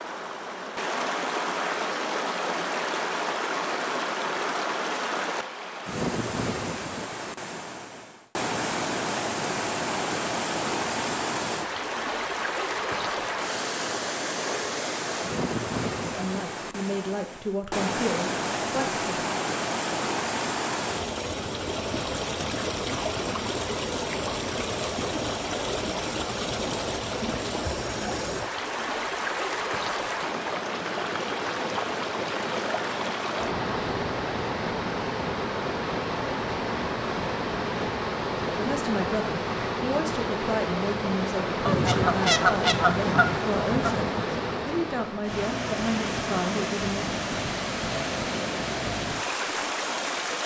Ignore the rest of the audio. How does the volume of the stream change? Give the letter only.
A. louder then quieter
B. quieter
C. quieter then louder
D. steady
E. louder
D.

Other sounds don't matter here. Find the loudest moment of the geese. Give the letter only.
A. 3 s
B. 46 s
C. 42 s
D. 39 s
C.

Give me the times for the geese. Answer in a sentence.
You can hear the geese from 41.6 to 44.1 s.